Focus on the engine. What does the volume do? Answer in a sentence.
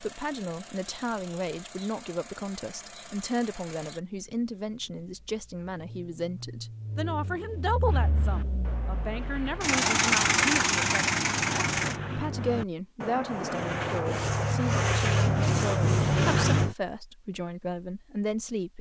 The volume of the engine goes up.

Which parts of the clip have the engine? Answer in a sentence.
You can hear the engine from 0.0 to 12.0 s.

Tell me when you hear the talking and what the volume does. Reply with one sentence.
The talking can be heard from 0.0 to 18.7 s, at a steady volume.